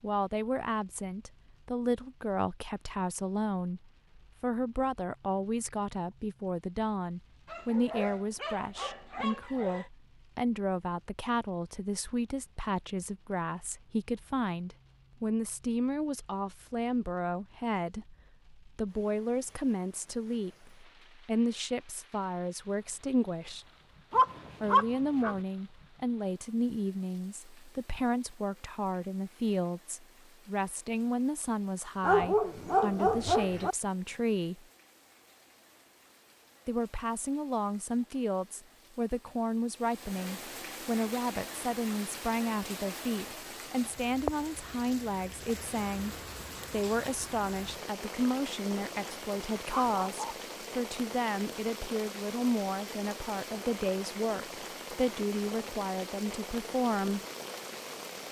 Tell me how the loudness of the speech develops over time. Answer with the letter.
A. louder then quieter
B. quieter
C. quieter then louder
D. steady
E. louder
D.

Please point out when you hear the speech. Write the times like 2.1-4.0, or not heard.
0.0-23.6, 24.6-34.6, 36.6-57.2.